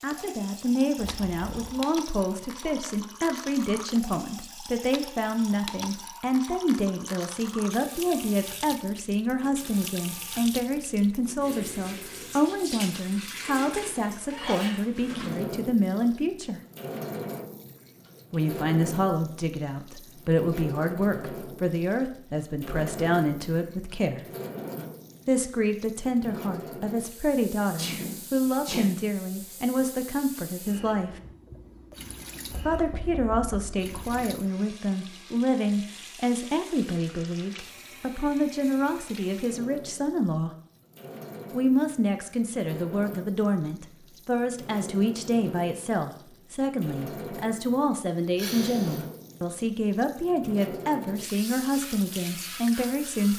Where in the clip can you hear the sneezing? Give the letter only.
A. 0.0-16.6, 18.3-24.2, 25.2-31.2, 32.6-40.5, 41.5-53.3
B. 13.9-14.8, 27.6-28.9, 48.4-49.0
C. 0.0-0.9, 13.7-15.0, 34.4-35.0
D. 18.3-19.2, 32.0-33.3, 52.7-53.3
B.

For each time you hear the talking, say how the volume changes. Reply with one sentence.
The talking can be heard from 0.0 to 16.6 s, at a steady volume; from 18.3 to 24.2 s, at a steady volume; from 25.2 to 31.2 s, at a steady volume; from 32.6 to 40.5 s, at a steady volume; and from 41.5 to 53.3 s, at a steady volume.